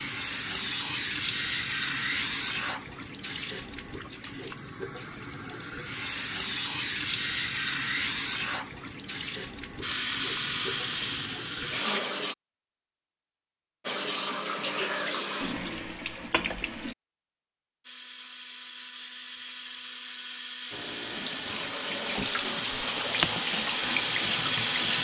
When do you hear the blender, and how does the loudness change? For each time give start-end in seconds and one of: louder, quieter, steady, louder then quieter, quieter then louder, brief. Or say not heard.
9.8-12.0 brief
17.8-24.9 louder.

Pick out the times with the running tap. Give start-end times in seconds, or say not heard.
0.0-12.3, 13.8-16.9, 20.7-24.9.